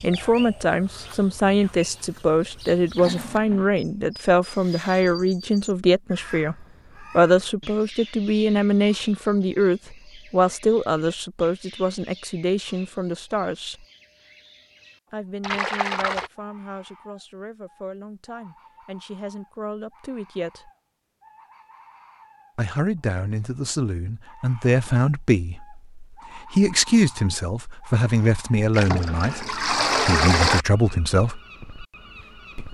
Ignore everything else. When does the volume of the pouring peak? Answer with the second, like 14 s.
30 s.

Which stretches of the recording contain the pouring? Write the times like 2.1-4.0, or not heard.
3.0-3.7, 15.4-16.3, 28.7-30.6.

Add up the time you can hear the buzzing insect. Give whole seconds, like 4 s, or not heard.
not heard.